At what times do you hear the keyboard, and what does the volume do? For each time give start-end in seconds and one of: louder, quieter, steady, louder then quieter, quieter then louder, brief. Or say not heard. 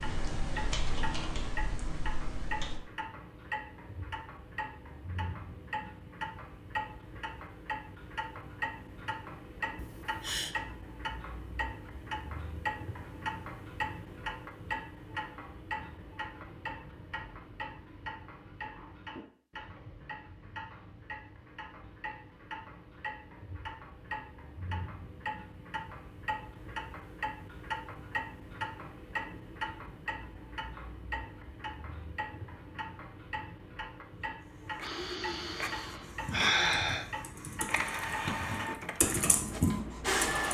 0.0-2.8 brief
36.2-40.5 louder.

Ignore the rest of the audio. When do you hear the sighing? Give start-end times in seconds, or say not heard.
9.8-10.6, 34.8-37.0.